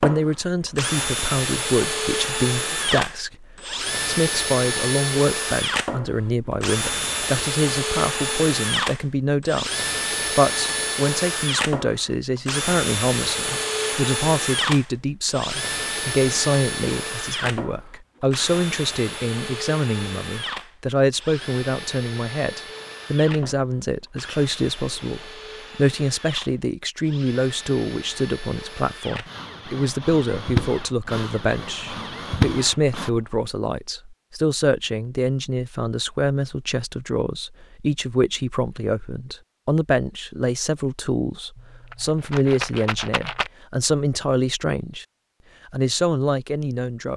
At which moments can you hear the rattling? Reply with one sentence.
The rattling can be heard from 41.5 to 43.5 s.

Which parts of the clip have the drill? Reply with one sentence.
The drill can be heard from 0.0 to 33.1 s.